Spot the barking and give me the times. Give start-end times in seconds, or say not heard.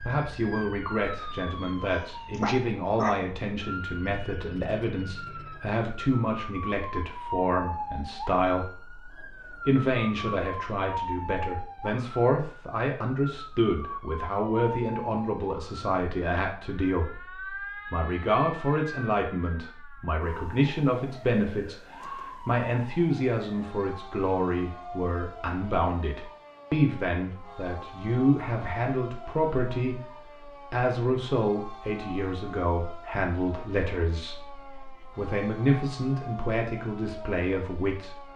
1.9-3.1.